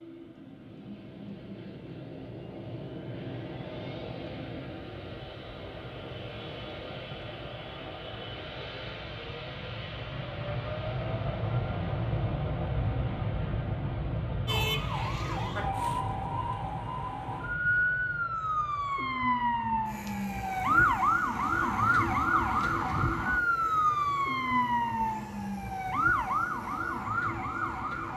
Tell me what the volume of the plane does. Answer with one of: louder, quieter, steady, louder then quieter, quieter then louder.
louder then quieter.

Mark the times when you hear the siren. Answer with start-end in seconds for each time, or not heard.
14.4-28.1.